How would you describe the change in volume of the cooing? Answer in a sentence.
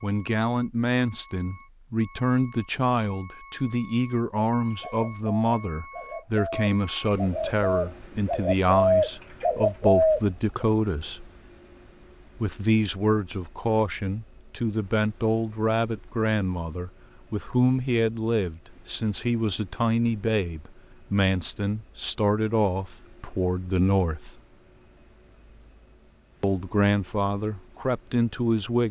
The volume of the cooing goes up.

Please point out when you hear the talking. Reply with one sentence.
You can hear the talking from 0.0 to 11.3 s, from 12.4 to 24.4 s and from 26.4 to 28.8 s.